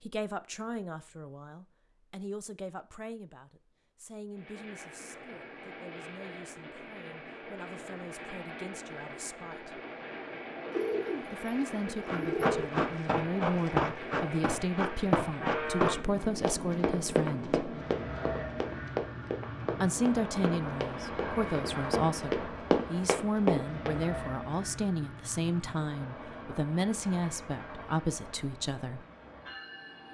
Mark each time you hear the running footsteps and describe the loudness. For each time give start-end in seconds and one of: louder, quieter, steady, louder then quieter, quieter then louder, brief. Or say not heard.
12.1-24.0 quieter then louder.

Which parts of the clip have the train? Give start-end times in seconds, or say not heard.
4.3-30.0.